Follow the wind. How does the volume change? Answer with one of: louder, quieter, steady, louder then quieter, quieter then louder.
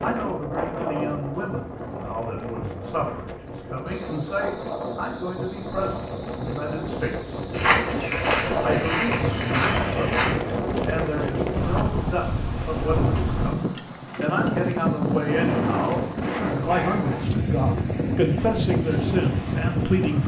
louder.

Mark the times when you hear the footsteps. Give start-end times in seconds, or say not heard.
7.5-10.3.